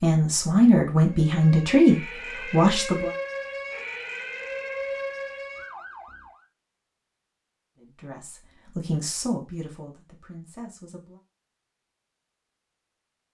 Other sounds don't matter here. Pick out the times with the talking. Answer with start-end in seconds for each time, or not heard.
0.0-3.1, 7.8-11.2.